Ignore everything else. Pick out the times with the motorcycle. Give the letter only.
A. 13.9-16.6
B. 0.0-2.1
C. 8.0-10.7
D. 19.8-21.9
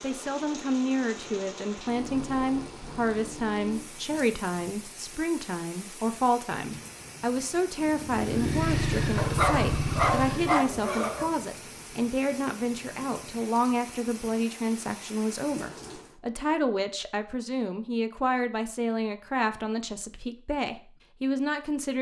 C.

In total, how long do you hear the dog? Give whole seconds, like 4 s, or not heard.
2 s.